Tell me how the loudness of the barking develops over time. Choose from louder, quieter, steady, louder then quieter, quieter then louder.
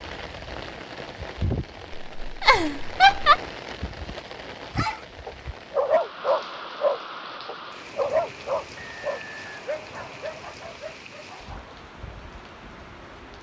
quieter.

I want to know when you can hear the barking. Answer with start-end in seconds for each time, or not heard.
4.8-11.6.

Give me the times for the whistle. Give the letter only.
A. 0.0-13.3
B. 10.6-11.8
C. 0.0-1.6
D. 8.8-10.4
D.